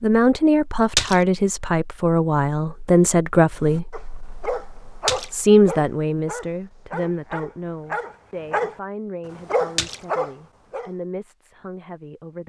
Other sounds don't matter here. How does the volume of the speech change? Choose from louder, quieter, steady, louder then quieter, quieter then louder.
quieter.